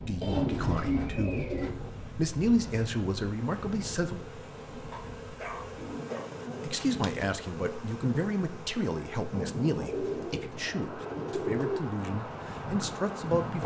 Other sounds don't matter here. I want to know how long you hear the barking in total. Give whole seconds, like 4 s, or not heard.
2 s.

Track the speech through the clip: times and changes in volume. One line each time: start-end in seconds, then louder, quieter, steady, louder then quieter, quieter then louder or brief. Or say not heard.
0.0-1.6 brief
2.1-4.2 brief
6.6-13.6 steady.